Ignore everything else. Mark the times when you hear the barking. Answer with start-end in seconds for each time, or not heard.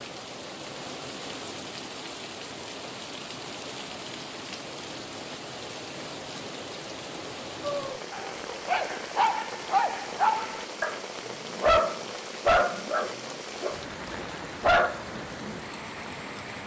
7.6-15.7.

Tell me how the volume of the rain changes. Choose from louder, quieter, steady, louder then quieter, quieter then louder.
steady.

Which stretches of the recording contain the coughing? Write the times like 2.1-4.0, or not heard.
not heard.